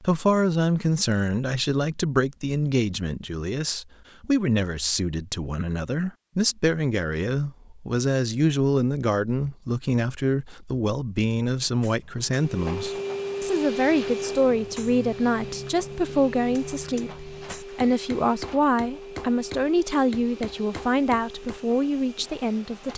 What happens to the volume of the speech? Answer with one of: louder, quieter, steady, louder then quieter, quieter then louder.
steady.